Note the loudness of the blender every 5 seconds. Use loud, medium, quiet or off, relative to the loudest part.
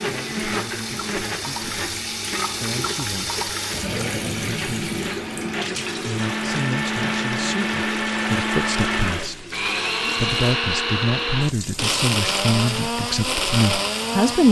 medium, loud, loud.